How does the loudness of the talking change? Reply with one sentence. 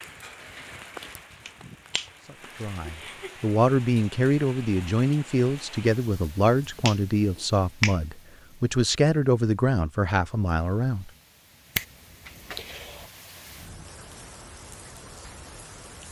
The volume of the talking stays about the same.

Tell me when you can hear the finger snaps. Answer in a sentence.
The finger snaps can be heard from 1.4 to 2.5 s, from 6.8 to 8.0 s and from 11.8 to 13.1 s.